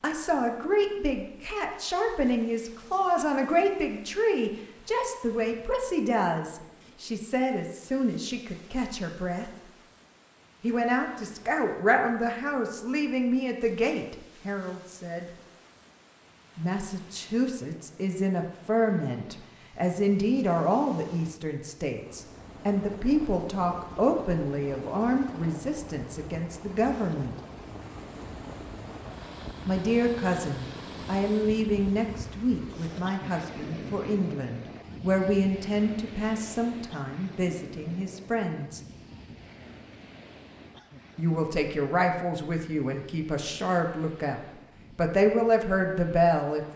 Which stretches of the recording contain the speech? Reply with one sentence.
You can hear the speech from 0.0 to 9.5 s, from 10.6 to 15.2 s, from 16.6 to 27.4 s, from 29.6 to 38.8 s and from 41.1 to 46.7 s.